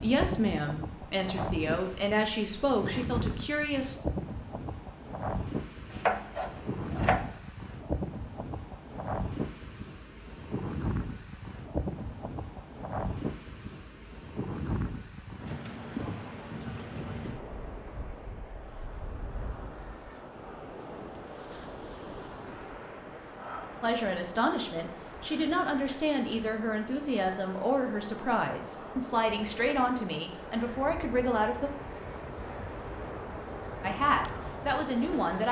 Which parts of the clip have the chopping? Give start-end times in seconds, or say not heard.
5.9-7.2.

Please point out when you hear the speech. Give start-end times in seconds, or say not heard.
0.0-4.0, 23.8-31.7, 33.8-35.4.